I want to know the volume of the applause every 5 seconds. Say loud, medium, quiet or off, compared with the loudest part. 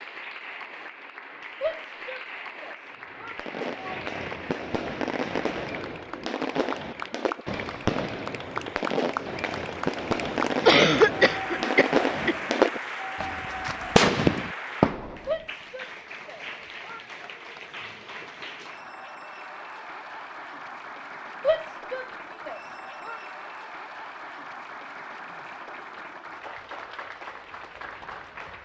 medium, loud, loud, medium, medium, medium.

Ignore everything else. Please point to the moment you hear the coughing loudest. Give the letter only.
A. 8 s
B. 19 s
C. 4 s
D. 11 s
D.